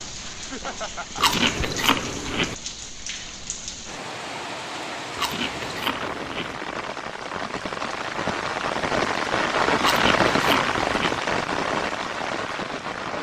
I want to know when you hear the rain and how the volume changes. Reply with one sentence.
The rain can be heard from 0.0 to 13.1 s, getting louder.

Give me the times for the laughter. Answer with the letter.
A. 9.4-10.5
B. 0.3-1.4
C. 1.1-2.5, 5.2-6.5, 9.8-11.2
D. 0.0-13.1
B.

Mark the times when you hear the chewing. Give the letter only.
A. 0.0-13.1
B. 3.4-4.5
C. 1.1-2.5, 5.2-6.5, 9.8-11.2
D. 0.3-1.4
C.